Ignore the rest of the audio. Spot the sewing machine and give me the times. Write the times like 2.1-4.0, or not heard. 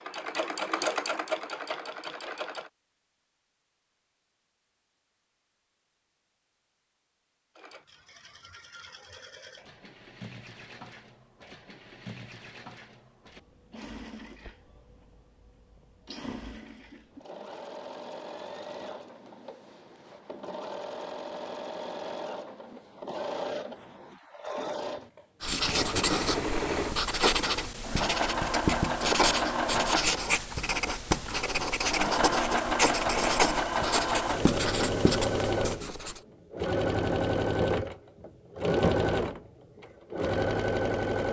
0.0-2.7, 7.5-41.2.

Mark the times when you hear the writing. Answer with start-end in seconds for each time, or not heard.
25.4-36.2.